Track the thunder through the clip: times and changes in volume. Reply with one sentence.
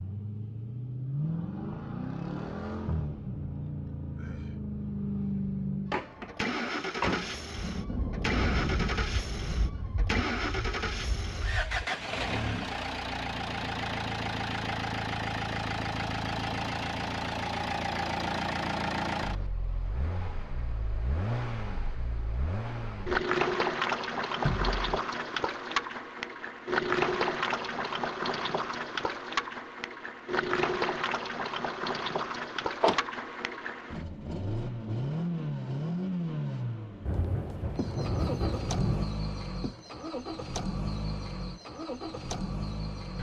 You can hear the thunder from 7.5 to 11.9 s, getting quieter; and briefly from 37.0 to 39.0 s.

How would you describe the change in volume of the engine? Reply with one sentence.
The loudness of the engine stays about the same.